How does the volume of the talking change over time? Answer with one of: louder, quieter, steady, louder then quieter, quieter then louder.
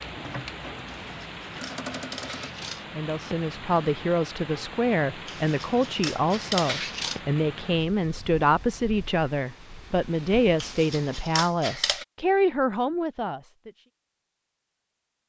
steady.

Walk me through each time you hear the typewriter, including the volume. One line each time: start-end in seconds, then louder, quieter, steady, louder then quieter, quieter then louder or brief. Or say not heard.
not heard.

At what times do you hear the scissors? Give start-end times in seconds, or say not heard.
0.8-2.9, 5.2-7.2, 10.6-12.1.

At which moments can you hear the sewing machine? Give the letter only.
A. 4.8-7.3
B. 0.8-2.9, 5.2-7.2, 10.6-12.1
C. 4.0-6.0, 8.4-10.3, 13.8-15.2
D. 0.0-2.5
D.